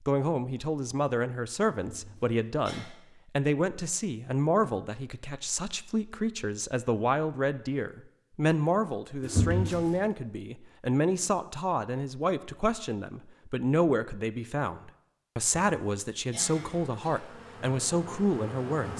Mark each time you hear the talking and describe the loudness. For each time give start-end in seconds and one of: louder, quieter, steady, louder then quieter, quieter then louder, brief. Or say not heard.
0.0-18.9 steady.